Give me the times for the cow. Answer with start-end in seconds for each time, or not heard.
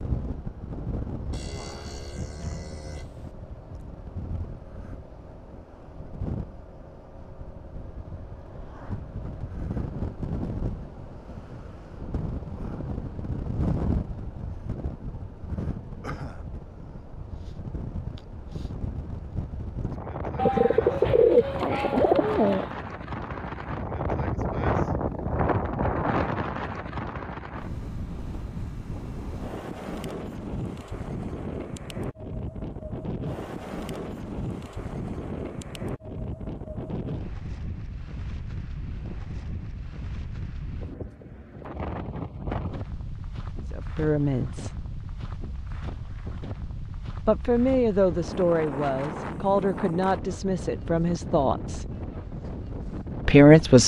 1.3-3.4.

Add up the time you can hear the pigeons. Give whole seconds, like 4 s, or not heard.
2 s.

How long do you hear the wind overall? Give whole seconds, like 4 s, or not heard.
54 s.